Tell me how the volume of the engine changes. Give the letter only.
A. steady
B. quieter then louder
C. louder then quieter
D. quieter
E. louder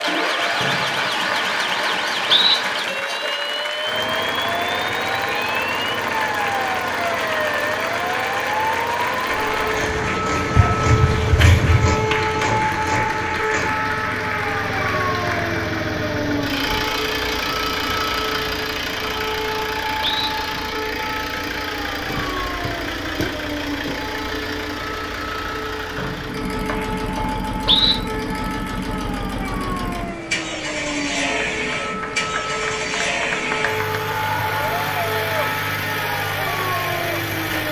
A.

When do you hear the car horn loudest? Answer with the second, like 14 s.
11 s.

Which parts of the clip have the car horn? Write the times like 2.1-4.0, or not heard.
10.6-12.2.